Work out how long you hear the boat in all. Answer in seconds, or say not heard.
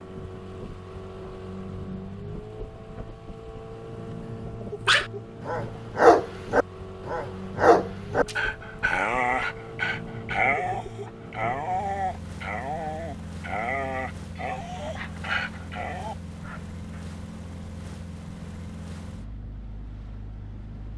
21 s.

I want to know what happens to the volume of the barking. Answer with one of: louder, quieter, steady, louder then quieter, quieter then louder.
quieter.